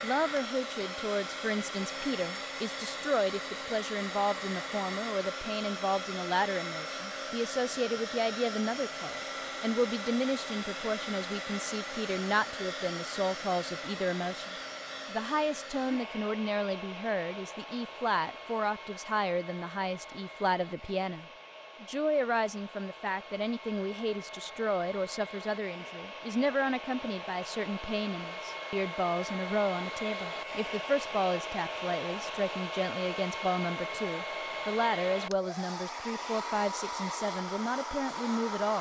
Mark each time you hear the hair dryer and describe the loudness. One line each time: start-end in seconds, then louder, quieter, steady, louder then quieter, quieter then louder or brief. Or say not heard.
0.0-38.7 quieter then louder.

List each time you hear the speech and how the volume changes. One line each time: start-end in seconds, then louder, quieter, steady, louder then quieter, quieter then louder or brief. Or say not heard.
0.0-38.7 steady.